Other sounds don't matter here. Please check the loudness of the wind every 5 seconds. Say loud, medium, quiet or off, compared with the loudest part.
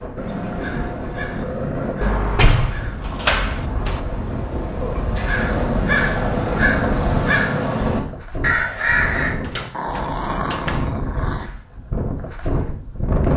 medium, loud, loud.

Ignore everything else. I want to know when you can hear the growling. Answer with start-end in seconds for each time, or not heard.
0.1-2.2, 5.3-7.3, 9.6-11.5.